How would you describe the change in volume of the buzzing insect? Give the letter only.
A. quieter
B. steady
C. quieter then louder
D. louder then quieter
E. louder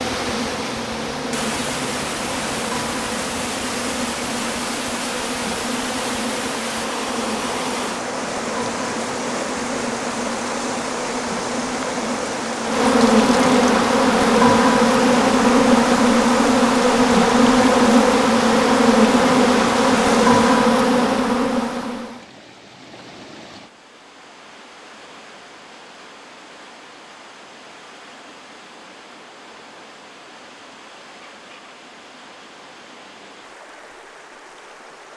E.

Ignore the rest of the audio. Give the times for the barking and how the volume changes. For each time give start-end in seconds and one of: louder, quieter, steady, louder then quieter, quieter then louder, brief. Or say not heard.
not heard.